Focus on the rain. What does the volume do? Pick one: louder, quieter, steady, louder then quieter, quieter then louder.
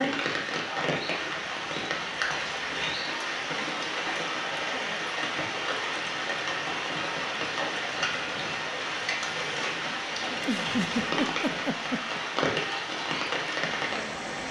steady.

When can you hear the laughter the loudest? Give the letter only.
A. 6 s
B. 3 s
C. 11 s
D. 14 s
C.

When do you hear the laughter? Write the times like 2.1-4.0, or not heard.
4.5-5.2, 10.3-12.2.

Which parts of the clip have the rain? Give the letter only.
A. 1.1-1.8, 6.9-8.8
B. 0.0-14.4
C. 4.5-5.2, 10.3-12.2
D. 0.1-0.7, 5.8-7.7
B.